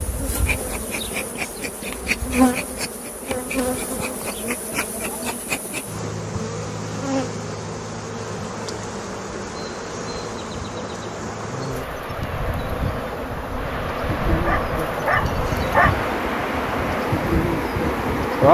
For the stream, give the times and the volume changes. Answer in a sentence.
The stream can be heard from 0.0 to 18.5 s, getting louder.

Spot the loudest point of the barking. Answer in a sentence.
The loudest moment of the barking is at 16 seconds.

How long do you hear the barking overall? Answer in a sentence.
The barking can be heard for 2 seconds in total.